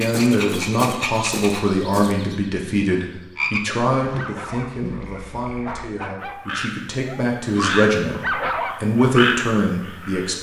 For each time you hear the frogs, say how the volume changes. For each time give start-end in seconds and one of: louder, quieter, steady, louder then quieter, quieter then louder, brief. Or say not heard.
0.0-10.3 quieter then louder.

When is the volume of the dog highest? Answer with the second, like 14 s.
8 s.